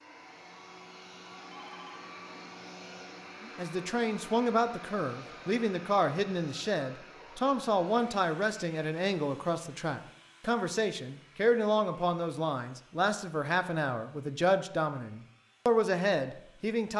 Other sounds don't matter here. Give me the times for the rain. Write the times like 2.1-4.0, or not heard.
not heard.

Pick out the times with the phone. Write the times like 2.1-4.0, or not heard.
1.5-2.0.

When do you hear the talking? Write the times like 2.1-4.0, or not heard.
3.4-16.9.